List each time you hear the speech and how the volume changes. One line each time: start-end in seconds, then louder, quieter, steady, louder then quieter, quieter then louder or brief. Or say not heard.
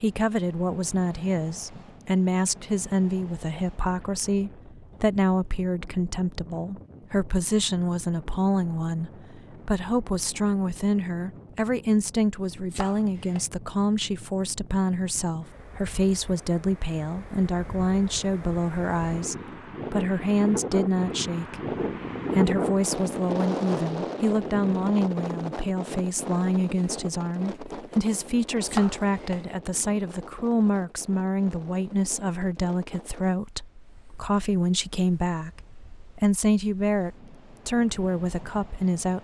0.0-21.6 steady
22.4-39.1 steady.